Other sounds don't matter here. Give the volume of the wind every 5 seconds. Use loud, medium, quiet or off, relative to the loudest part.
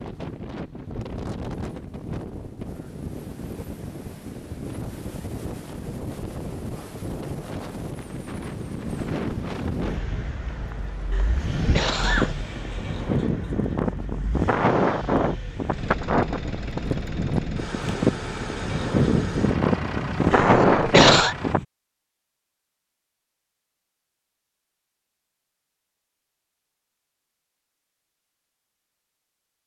quiet, quiet, medium, medium, loud, off.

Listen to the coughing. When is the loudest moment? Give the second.
21 s.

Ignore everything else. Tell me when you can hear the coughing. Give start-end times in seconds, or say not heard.
11.1-12.3, 20.3-21.4.